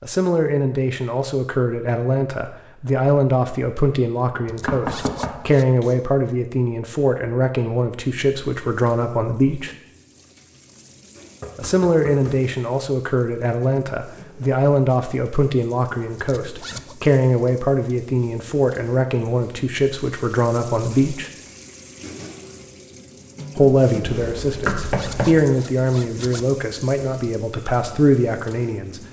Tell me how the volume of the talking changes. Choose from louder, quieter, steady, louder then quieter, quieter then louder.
steady.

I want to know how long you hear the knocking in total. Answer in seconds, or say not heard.
4 s.